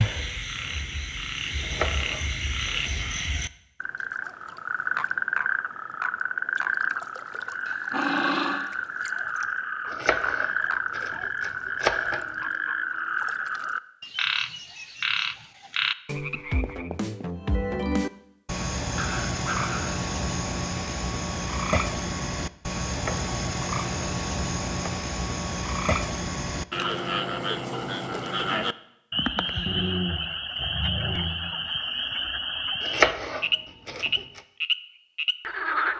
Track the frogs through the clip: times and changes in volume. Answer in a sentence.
You can hear the frogs from 0.0 to 35.9 s, at a steady volume.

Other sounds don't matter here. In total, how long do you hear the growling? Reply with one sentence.
The growling can be heard for 4 seconds in total.